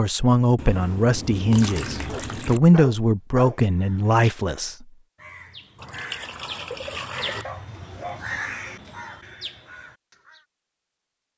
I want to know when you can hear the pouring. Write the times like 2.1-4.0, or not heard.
0.6-2.6, 5.8-7.5.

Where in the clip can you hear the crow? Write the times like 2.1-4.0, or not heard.
3.6-10.4.